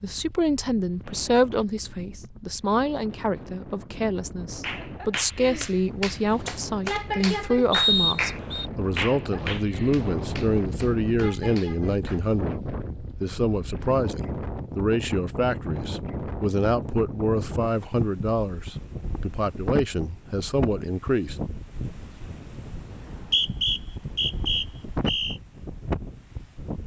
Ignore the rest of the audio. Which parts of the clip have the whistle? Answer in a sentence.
The whistle can be heard from 7.7 to 8.7 s and from 22.9 to 25.4 s.